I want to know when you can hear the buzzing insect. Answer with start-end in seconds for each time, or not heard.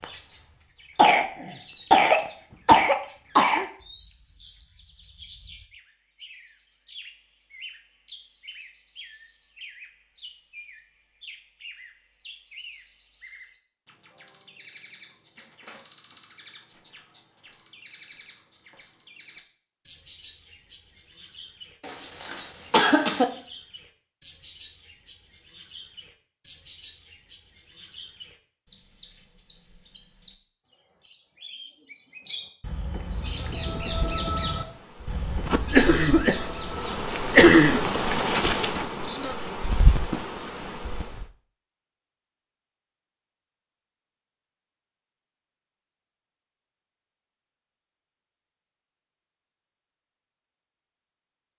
33.1-41.2.